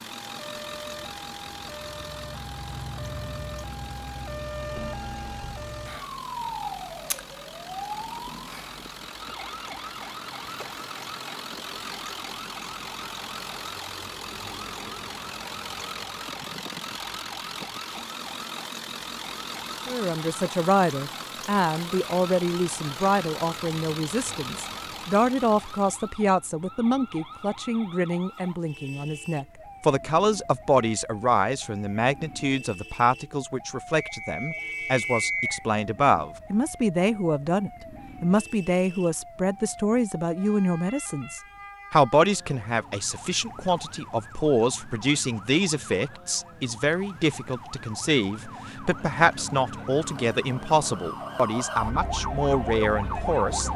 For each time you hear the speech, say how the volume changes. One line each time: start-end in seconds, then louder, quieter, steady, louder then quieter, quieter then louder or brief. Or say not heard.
19.9-53.7 steady.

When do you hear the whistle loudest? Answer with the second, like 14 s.
35 s.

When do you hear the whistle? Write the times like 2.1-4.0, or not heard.
34.0-35.6.